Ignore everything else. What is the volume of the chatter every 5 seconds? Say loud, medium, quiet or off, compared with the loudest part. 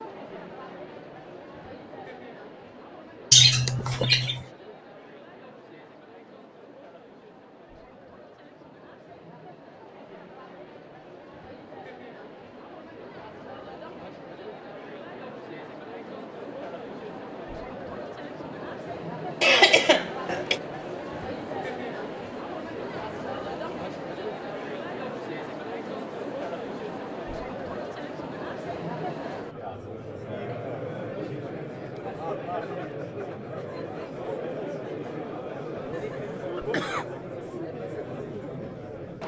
medium, quiet, medium, loud, loud, loud, loud, loud.